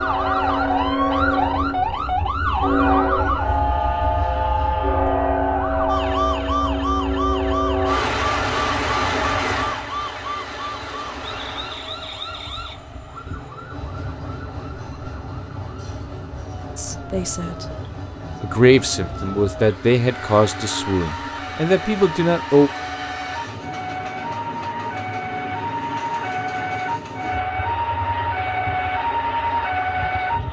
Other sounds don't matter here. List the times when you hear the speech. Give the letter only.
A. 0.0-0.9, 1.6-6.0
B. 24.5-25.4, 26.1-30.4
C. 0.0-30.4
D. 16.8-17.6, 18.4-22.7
D.